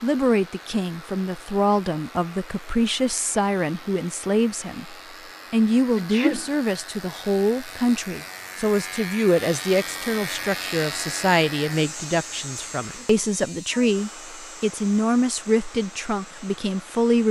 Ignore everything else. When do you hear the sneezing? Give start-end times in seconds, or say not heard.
6.0-6.5.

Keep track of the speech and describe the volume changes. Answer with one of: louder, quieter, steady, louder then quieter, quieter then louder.
steady.